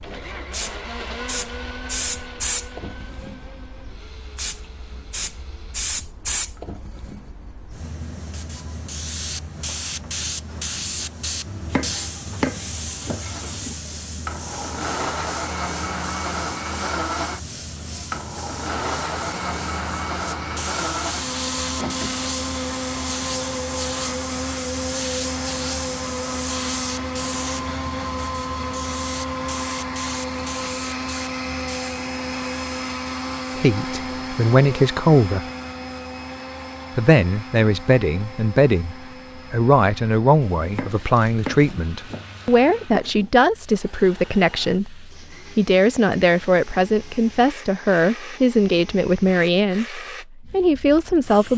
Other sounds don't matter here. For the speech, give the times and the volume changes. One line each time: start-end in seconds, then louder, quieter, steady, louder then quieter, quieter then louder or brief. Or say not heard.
33.5-35.5 brief
37.0-51.5 steady.